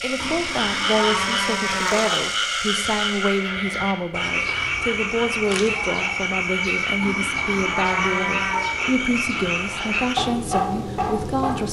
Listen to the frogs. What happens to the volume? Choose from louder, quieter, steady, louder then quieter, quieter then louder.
steady.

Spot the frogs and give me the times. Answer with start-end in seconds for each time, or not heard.
0.0-11.6.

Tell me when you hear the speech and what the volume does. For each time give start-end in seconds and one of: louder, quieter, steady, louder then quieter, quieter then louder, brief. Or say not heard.
0.0-11.6 steady.